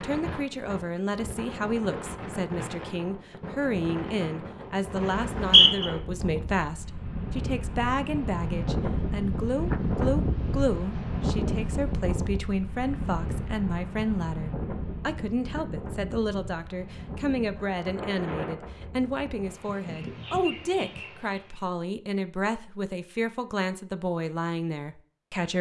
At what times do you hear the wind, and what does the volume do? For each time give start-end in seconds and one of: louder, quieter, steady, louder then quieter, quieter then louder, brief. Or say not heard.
0.0-21.6 louder then quieter.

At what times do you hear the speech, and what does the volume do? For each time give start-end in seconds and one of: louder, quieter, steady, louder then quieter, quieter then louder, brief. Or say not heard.
0.0-25.5 steady.